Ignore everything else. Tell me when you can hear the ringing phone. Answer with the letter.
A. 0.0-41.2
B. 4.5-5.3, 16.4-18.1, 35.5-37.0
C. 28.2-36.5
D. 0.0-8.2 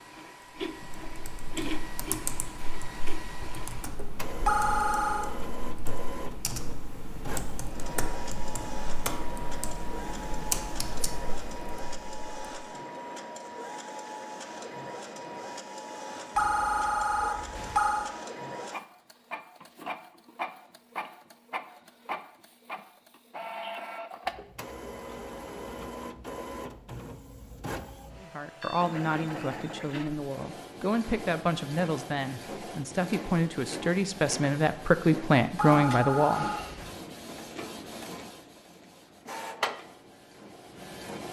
B.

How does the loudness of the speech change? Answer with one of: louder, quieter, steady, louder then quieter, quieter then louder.
louder.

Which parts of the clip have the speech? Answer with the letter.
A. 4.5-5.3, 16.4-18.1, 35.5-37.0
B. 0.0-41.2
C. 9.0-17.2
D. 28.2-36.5
D.